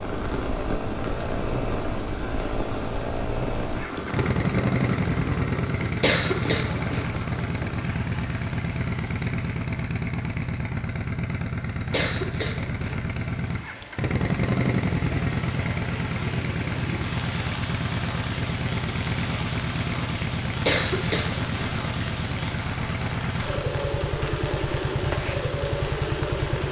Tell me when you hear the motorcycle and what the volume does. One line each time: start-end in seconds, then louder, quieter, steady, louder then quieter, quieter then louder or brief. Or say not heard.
0.0-26.6 steady.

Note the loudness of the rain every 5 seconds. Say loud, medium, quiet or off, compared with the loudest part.
loud, loud, medium, loud, loud, loud.